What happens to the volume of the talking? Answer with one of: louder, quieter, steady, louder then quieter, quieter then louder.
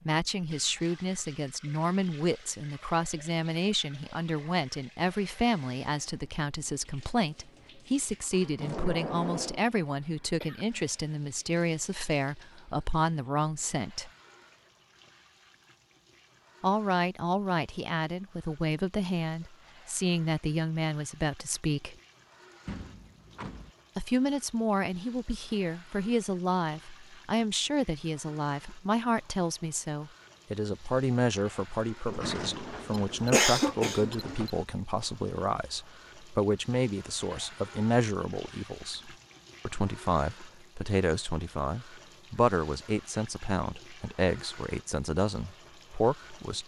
steady.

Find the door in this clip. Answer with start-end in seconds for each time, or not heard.
8.6-9.7, 22.6-23.7, 32.0-34.5.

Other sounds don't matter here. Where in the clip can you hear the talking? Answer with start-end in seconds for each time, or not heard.
0.1-14.1, 16.6-21.9, 23.9-46.6.